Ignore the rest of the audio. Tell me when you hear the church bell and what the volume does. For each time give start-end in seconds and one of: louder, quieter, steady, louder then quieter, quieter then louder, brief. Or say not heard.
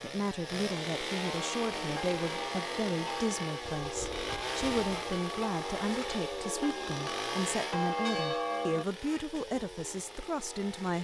1.4-8.8 louder.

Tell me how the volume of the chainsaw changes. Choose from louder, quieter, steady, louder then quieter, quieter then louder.
quieter.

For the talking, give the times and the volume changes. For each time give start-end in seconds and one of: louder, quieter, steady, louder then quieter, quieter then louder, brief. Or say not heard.
0.0-10.9 steady.